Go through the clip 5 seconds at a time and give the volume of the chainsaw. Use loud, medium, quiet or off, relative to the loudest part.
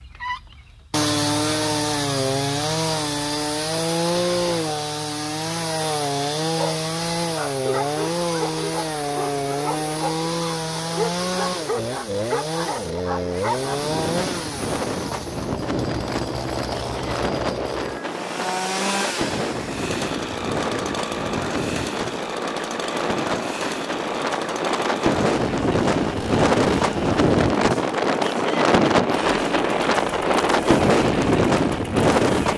loud, loud, loud, medium, medium, medium, medium.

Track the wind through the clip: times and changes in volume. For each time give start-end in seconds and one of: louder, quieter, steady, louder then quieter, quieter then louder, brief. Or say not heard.
13.7-32.5 louder.